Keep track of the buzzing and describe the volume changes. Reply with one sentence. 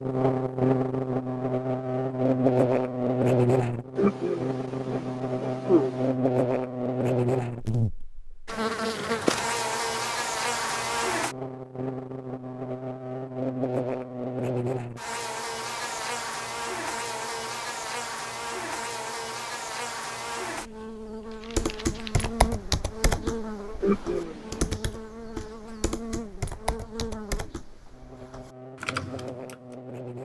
The loudness of the buzzing goes down.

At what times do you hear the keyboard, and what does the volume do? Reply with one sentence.
You can hear the keyboard from 21.6 to 29.6 s, getting quieter.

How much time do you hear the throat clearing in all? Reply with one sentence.
The throat clearing can be heard for 3 seconds in total.